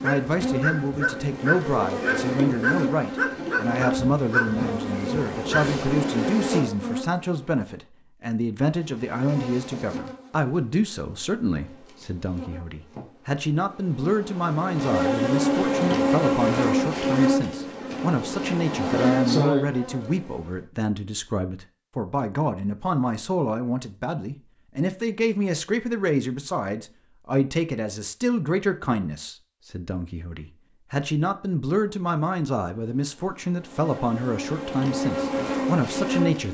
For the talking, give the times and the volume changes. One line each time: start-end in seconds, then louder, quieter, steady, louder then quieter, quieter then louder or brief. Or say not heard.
0.0-36.4 steady.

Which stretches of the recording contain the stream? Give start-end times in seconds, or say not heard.
not heard.